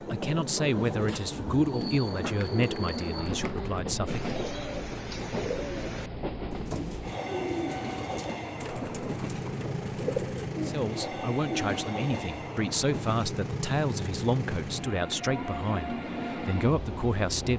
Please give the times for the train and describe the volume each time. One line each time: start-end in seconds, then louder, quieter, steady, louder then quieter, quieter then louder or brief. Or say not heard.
0.0-17.5 steady.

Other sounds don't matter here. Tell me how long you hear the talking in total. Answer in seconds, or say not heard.
11 s.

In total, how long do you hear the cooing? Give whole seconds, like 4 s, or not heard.
11 s.